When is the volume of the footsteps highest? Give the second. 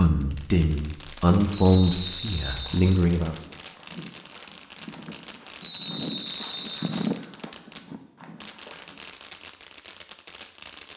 7 s.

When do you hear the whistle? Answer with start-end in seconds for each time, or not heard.
1.5-3.0, 5.6-7.1.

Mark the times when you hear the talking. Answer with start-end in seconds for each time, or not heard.
0.0-3.4.